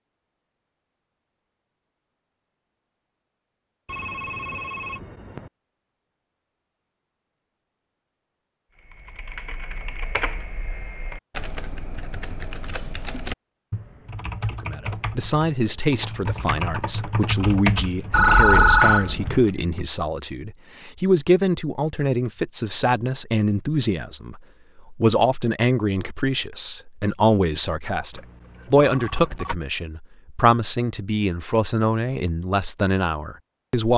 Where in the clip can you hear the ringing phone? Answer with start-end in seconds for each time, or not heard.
3.9-5.5, 18.1-19.4, 28.1-29.6.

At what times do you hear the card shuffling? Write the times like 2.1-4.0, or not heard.
not heard.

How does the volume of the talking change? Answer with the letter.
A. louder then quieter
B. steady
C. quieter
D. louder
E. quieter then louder
B.